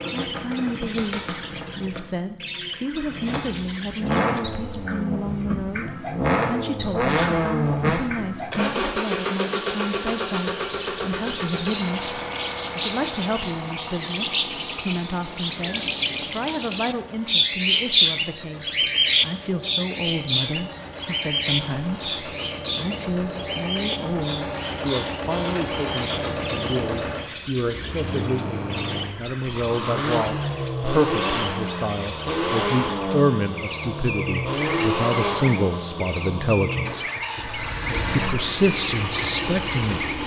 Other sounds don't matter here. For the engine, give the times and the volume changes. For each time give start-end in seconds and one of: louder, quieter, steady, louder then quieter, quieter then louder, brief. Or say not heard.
0.0-40.2 quieter then louder.